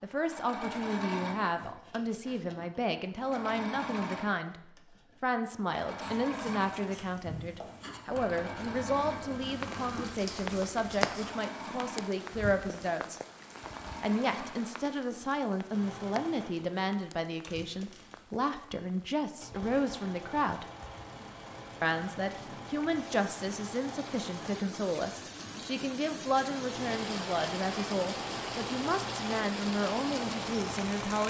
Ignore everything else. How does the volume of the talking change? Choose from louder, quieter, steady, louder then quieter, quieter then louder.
steady.